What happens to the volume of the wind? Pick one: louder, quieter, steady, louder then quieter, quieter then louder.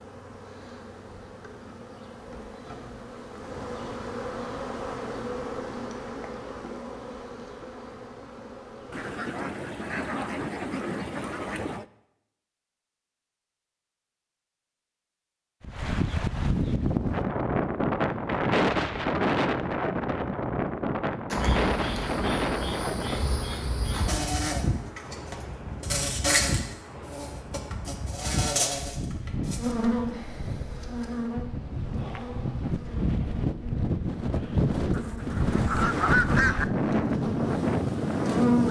quieter then louder.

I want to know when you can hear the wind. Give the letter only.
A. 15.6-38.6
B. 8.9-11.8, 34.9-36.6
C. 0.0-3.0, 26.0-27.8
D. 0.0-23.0
A.